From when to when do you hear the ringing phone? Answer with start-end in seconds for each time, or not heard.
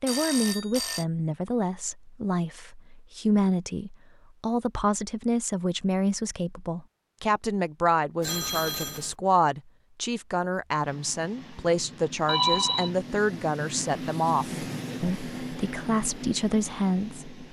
0.1-1.1, 8.2-9.2, 12.2-12.9.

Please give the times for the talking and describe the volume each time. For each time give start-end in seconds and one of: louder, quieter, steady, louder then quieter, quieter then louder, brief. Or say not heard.
0.0-17.4 steady.